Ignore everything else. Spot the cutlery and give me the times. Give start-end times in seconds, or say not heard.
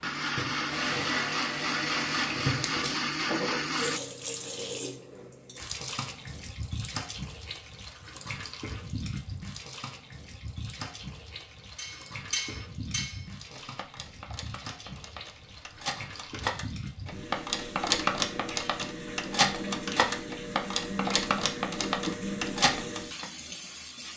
11.8-23.2.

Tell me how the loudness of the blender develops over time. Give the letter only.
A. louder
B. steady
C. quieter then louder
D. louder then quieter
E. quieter
B.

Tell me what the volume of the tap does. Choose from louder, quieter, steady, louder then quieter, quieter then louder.
quieter then louder.